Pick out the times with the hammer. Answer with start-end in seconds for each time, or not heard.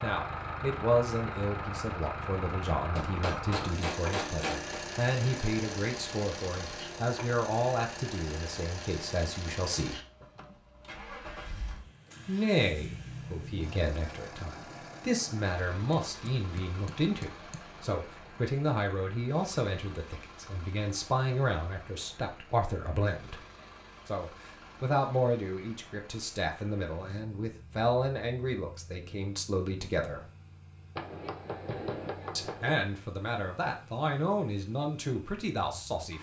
3.0-4.8, 15.9-17.6, 30.9-32.8.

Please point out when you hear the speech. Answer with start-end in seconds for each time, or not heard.
0.0-10.0, 12.2-23.4, 24.1-30.2, 32.4-36.1.